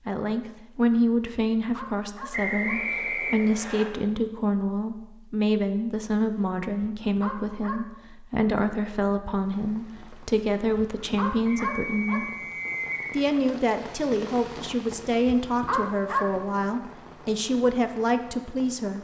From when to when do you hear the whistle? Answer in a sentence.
You can hear the whistle from 2.3 to 3.9 s and from 11.4 to 13.2 s.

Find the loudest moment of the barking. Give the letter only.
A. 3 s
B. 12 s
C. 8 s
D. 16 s
D.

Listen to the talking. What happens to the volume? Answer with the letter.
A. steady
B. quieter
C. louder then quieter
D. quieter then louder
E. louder
A.